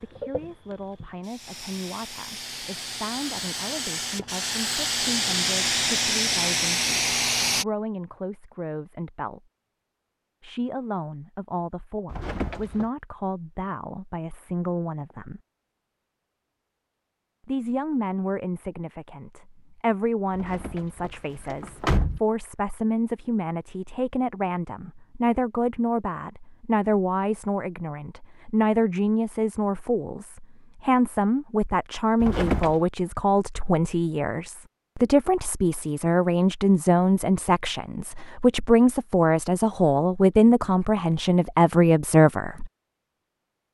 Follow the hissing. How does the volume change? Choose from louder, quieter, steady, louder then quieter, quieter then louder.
louder.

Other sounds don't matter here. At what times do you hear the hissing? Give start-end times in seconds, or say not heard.
0.0-7.7.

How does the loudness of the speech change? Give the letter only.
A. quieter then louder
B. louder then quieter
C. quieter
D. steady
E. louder
E.